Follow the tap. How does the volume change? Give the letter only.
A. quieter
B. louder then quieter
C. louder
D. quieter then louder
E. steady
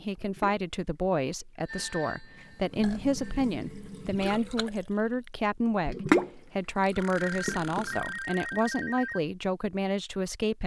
B.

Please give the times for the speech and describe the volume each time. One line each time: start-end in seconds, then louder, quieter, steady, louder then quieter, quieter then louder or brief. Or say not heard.
0.0-10.6 steady.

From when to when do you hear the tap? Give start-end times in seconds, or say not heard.
0.1-8.1.